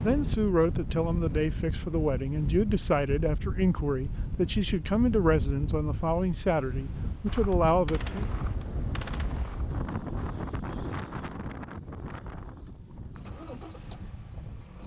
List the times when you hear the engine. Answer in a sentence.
The engine can be heard from 13.2 to 14.8 s.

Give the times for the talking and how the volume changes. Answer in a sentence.
You can hear the talking from 0.0 to 8.3 s, at a steady volume.